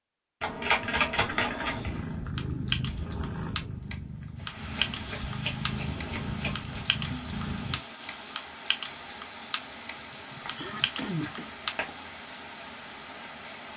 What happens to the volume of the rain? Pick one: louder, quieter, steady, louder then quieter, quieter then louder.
steady.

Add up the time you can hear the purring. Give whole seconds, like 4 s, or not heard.
6 s.